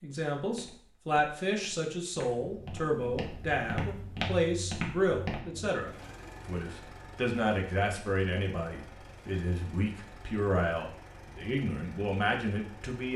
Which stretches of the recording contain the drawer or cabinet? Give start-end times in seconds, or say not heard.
not heard.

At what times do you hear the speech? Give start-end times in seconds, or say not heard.
0.0-13.1.